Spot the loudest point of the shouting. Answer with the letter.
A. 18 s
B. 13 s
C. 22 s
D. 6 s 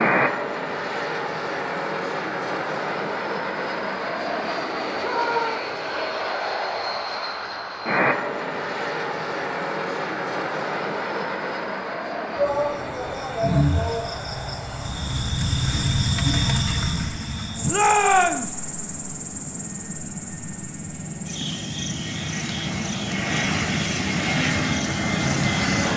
A.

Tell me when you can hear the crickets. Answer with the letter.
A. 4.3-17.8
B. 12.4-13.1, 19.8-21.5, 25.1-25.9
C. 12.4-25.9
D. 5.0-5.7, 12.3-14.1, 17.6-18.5
C.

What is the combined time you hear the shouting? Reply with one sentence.
The shouting can be heard for 3 seconds in total.